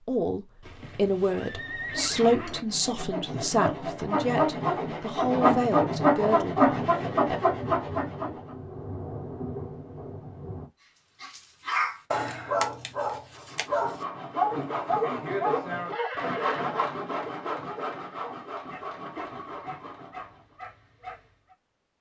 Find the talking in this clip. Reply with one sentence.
You can hear the talking from 0.1 to 7.4 s.